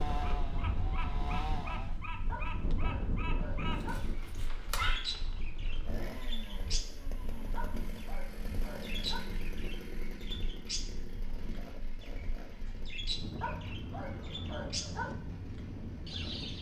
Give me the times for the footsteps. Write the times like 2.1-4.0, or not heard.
not heard.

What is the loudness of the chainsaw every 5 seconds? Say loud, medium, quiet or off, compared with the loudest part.
loud, loud, medium, medium.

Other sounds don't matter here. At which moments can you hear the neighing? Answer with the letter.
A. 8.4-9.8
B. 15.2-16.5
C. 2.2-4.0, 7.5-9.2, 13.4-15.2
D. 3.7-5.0
D.